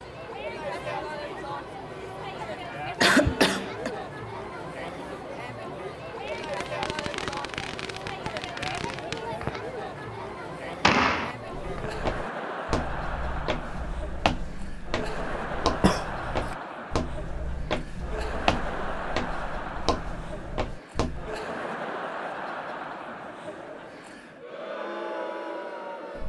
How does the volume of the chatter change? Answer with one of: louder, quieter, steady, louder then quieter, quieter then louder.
steady.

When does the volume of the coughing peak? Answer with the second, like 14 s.
3 s.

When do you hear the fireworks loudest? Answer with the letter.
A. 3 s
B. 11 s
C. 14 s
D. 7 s
B.